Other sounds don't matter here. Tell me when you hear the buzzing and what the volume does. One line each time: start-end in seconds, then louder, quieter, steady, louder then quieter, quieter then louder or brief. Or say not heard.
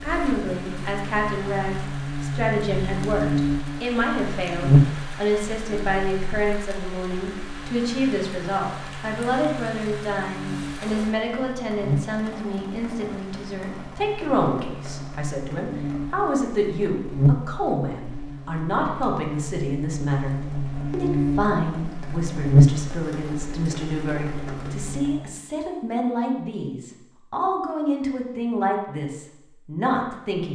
0.0-25.4 quieter then louder.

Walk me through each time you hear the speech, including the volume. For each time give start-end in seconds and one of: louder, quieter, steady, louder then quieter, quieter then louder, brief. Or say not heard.
0.0-30.5 steady.